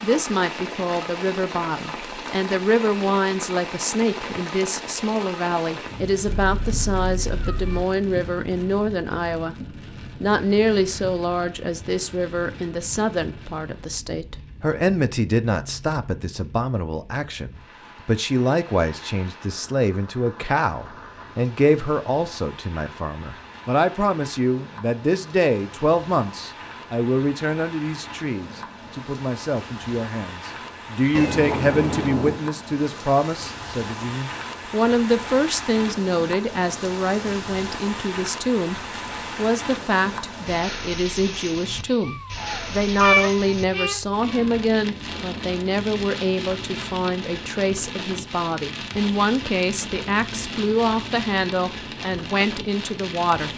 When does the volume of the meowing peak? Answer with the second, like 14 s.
43 s.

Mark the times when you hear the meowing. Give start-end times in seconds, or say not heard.
6.2-7.8, 31.1-32.4, 42.0-44.5.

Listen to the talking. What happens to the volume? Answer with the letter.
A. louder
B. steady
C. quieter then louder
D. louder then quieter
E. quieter
B.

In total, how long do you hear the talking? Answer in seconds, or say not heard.
53 s.